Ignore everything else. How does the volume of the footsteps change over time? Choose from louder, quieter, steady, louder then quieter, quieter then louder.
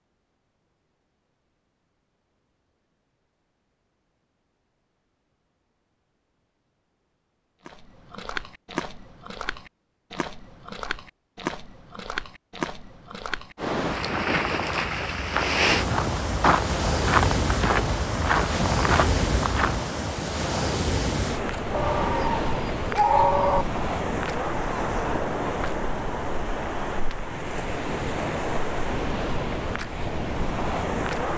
louder.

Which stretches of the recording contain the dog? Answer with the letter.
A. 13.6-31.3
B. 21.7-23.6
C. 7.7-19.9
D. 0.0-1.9
B.